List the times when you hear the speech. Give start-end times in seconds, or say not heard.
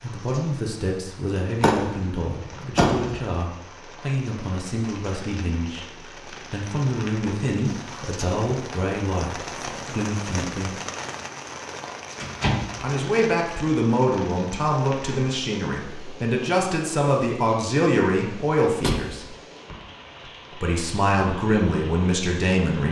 0.0-10.8, 12.8-19.2, 20.6-22.8.